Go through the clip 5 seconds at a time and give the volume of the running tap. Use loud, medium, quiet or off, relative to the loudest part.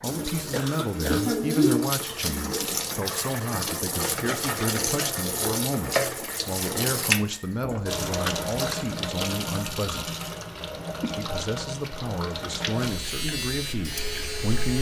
loud, loud, medium.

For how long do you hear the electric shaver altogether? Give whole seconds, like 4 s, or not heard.
2 s.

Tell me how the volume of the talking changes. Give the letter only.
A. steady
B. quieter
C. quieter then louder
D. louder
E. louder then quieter
A.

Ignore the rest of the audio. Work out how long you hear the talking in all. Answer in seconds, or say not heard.
14 s.